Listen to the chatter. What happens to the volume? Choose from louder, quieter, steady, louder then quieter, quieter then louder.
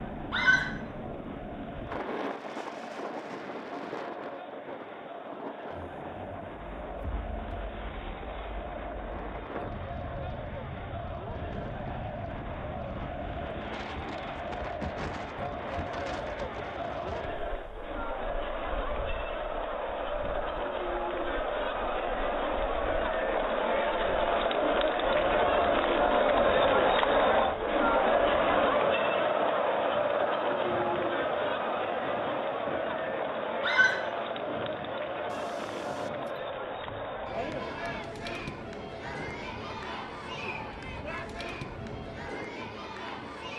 louder then quieter.